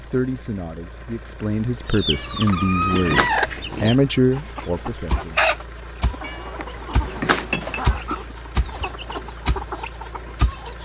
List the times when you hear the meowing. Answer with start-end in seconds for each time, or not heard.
2.1-3.4, 6.2-8.2.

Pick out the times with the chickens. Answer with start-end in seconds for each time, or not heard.
1.9-10.8.